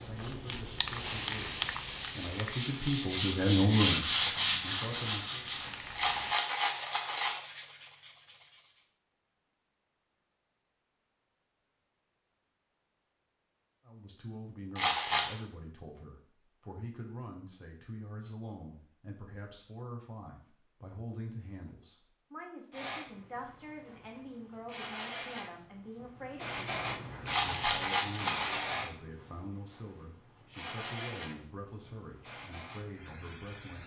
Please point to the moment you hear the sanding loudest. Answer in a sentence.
The loudest moment of the sanding is at 4 seconds.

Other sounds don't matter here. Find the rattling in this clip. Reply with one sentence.
The rattling can be heard from 6.0 to 7.3 s, from 14.8 to 15.3 s and from 27.2 to 28.5 s.